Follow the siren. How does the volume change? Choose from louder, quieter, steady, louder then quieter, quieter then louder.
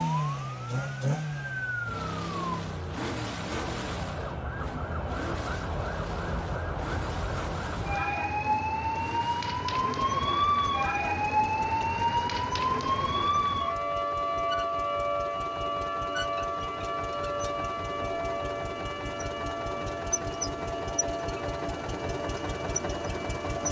louder then quieter.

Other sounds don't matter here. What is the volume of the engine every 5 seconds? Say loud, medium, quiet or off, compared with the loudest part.
loud, medium, medium, medium, loud.